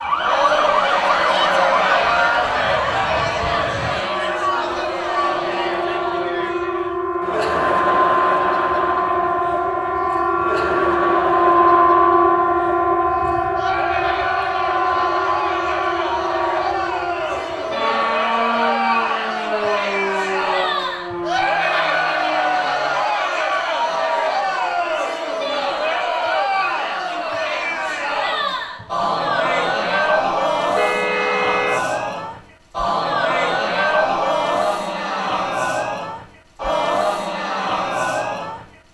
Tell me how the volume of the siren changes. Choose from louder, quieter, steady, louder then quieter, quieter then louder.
louder then quieter.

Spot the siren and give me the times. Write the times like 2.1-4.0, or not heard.
0.0-23.1.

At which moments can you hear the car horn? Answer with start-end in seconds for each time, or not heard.
30.8-31.9.